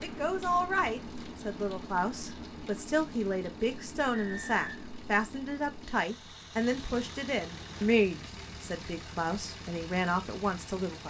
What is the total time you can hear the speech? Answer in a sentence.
The speech can be heard for 11 seconds in total.